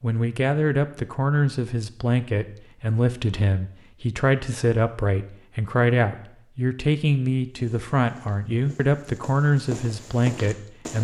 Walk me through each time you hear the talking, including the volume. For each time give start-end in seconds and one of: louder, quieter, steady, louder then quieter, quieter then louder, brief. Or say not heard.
0.0-10.9 steady.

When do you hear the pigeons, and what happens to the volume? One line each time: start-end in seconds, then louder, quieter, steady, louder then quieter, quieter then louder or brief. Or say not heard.
not heard.